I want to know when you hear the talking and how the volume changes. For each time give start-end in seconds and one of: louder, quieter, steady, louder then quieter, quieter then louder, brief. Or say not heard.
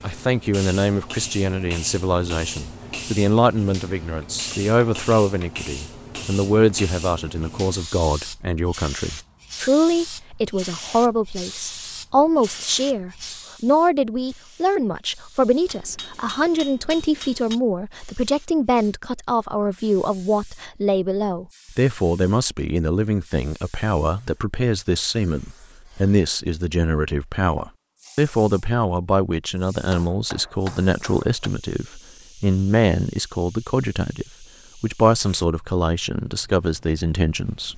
0.0-37.7 steady.